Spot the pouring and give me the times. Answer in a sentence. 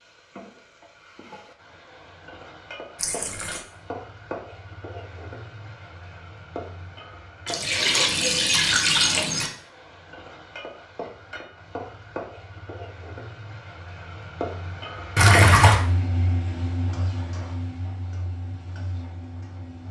The pouring can be heard from 3.0 to 3.6 s, from 7.5 to 9.5 s and from 15.2 to 15.8 s.